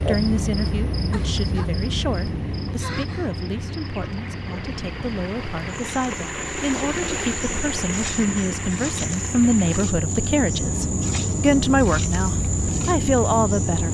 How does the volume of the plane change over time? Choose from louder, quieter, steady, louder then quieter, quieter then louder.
quieter then louder.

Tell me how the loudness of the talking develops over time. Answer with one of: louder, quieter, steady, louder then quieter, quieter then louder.
louder.